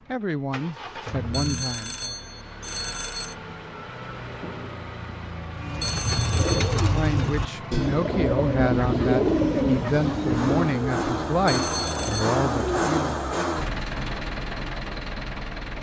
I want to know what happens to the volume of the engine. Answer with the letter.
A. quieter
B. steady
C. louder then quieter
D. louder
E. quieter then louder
D.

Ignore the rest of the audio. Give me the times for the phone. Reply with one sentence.
The phone can be heard from 1.3 to 3.4 s, from 5.8 to 6.8 s and from 11.4 to 12.3 s.